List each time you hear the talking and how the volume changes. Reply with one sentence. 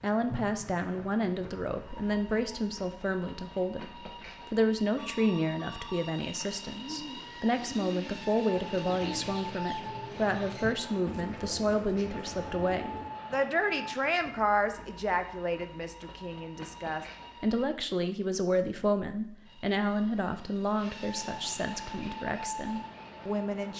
The talking can be heard from 0.0 to 23.7 s, at a steady volume.